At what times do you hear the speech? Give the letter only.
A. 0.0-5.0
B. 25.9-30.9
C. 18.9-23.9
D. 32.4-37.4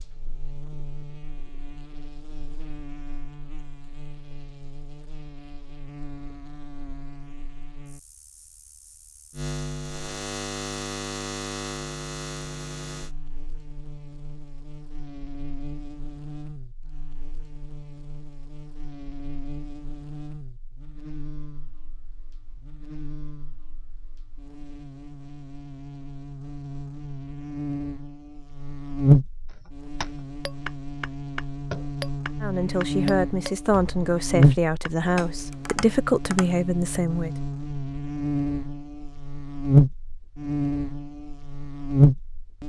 D.